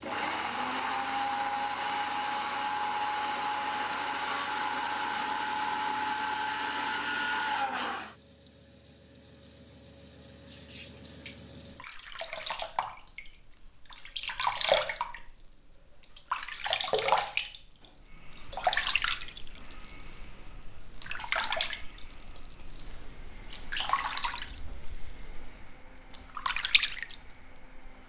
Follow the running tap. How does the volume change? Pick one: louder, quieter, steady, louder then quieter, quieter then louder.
louder then quieter.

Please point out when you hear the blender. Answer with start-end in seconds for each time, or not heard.
0.0-8.2, 18.0-28.0.